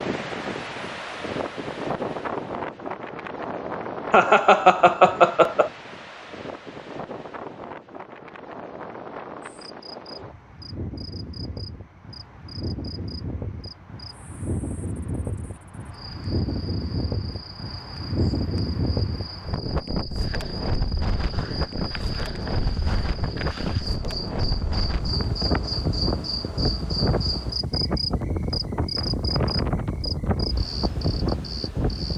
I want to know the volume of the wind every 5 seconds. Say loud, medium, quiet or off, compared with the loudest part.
loud, medium, medium, loud, loud, loud, loud.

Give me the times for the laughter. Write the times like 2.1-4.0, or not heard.
4.1-5.7.